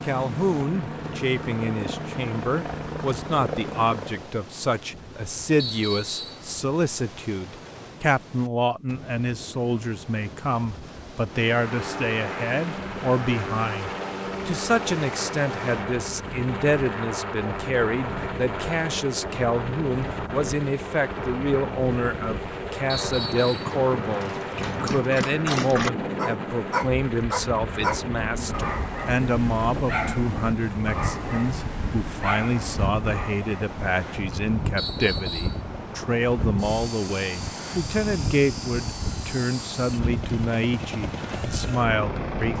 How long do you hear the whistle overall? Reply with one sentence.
The whistle can be heard for 3 seconds in total.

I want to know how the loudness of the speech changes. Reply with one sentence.
The volume of the speech stays about the same.